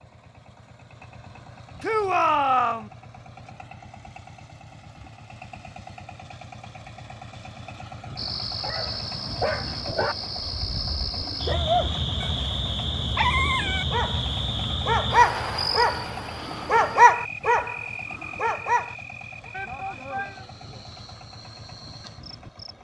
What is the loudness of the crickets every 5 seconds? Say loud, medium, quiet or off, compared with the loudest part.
off, loud, loud, loud, quiet.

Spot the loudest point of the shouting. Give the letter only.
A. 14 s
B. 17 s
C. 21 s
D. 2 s
D.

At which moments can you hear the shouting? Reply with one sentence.
You can hear the shouting from 1.8 to 2.9 s and from 19.5 to 20.4 s.